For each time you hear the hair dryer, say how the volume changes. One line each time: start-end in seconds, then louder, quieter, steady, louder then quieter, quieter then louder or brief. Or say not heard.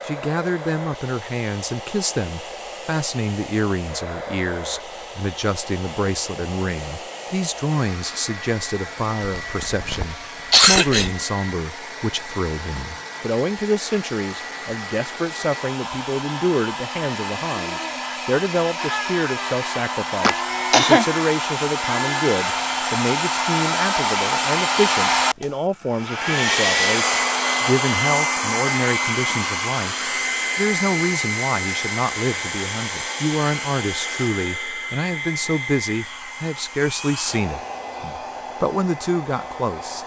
0.0-40.0 louder then quieter.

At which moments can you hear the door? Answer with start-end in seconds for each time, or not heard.
not heard.